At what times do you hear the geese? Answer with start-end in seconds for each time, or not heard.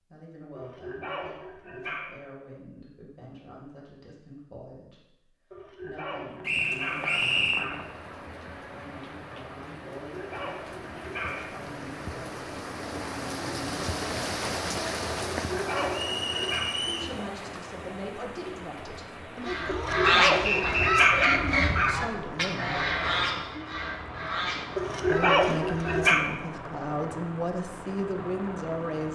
19.4-26.1.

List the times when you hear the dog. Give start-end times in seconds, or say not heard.
0.6-2.1, 5.5-7.8, 10.1-11.5, 15.3-16.7, 19.6-22.1, 24.8-26.3.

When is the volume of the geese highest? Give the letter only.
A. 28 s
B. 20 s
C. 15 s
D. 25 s
B.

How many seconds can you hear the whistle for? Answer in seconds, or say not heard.
4 s.